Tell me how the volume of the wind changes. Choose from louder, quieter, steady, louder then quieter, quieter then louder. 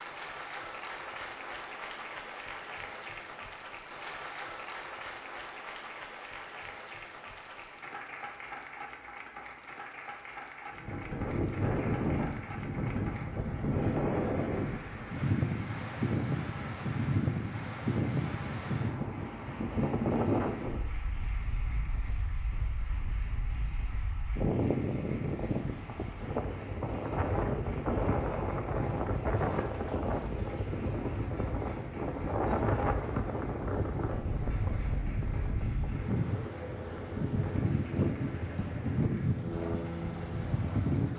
steady.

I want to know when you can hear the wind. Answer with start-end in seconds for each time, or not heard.
10.7-41.1.